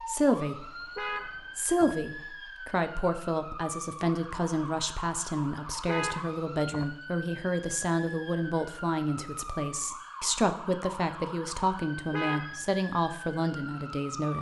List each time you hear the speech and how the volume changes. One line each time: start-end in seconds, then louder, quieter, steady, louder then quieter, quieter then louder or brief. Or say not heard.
0.1-14.3 steady.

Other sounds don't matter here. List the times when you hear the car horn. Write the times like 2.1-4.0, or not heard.
0.7-1.9, 5.7-6.9, 11.9-12.7.